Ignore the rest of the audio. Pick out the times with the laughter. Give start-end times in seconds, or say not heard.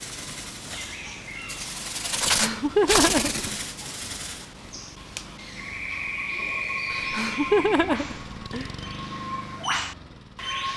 2.2-3.4, 6.9-8.7.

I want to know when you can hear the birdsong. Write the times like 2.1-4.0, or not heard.
0.0-10.7.